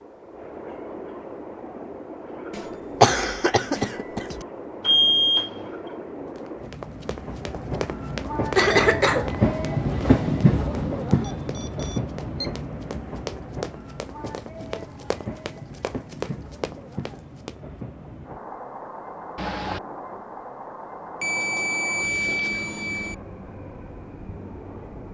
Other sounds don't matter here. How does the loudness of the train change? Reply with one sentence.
The loudness of the train goes up, then down.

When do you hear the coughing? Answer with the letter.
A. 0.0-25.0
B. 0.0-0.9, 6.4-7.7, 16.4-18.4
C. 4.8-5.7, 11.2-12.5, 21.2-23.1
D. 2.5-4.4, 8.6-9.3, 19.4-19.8
D.